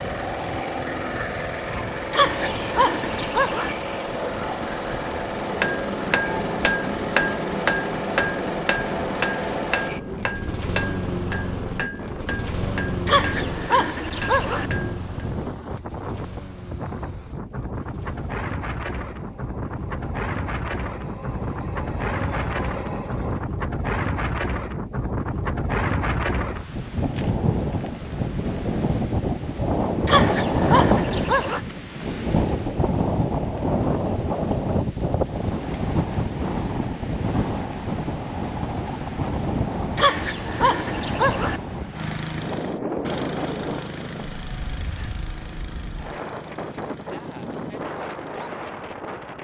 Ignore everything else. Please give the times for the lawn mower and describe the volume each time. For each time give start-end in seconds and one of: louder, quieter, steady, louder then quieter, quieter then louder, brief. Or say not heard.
0.0-23.4 quieter
41.9-49.3 quieter.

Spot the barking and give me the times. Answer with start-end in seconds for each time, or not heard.
2.1-3.8, 13.1-14.7, 30.1-31.6, 40.0-41.6.